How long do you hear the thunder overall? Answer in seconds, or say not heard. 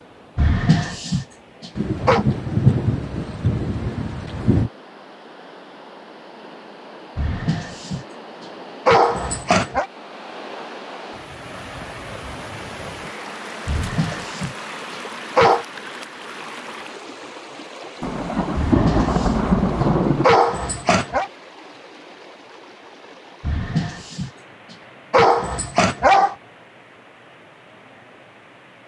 5 s.